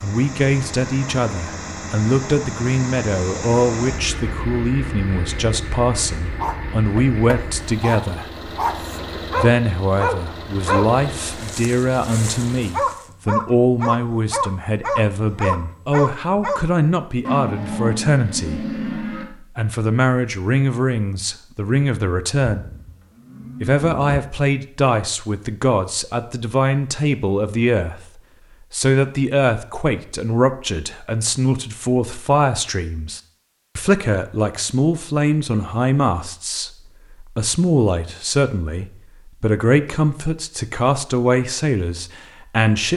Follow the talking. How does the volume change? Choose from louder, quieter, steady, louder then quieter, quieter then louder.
steady.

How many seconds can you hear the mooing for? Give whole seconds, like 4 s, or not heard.
4 s.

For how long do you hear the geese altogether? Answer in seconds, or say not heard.
not heard.